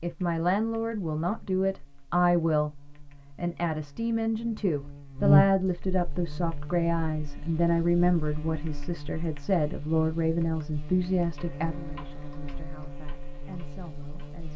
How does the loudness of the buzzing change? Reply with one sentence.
The loudness of the buzzing goes up, then down.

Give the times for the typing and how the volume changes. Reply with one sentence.
You can't hear the typing here.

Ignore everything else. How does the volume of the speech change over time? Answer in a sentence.
The volume of the speech goes down.